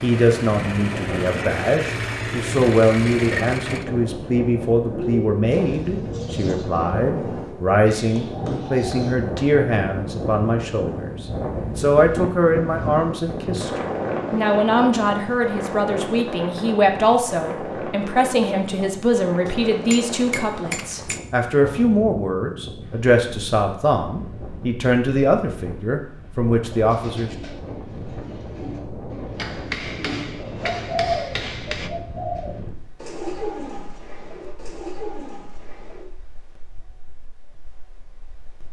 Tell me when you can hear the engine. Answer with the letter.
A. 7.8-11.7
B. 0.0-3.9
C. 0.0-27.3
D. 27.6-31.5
B.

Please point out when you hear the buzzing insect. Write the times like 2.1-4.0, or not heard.
not heard.